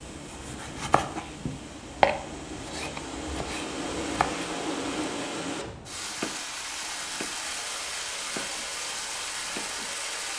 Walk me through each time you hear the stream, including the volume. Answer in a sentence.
You can hear the stream from 0.0 to 10.3 s, getting louder.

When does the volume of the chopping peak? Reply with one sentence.
The loudest moment of the chopping is at 2 seconds.